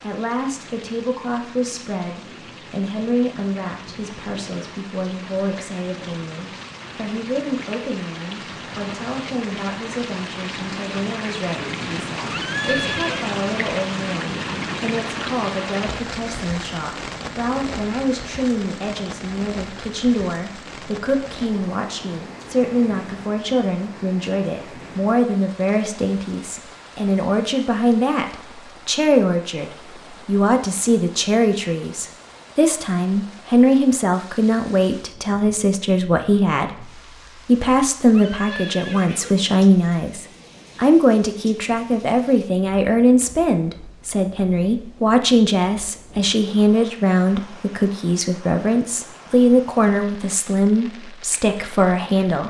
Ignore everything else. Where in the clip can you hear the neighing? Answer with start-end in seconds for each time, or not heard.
12.3-13.3, 38.1-39.5.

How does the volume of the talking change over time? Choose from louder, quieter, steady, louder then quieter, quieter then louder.
louder.